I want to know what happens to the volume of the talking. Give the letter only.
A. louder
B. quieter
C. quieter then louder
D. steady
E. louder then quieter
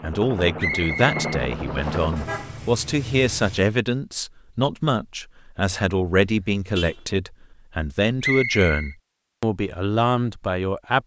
D.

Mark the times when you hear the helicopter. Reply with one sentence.
The helicopter can be heard from 0.0 to 2.6 s.